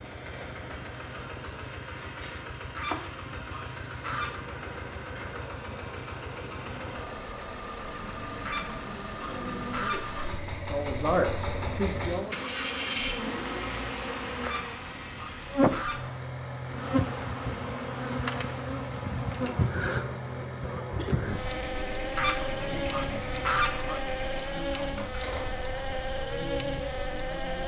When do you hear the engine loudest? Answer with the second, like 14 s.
13 s.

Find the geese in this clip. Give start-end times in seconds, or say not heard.
2.8-4.5, 8.4-10.3, 14.4-16.1, 22.1-24.0.